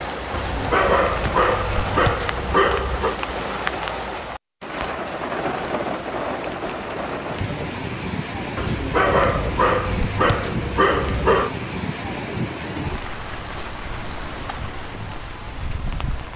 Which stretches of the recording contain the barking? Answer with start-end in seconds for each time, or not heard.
0.3-3.2, 8.6-11.6.